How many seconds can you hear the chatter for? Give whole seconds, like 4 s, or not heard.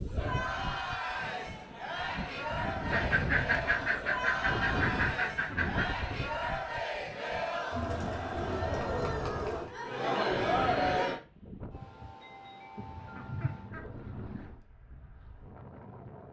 11 s.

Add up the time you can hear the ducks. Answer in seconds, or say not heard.
5 s.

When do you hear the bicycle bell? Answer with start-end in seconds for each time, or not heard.
not heard.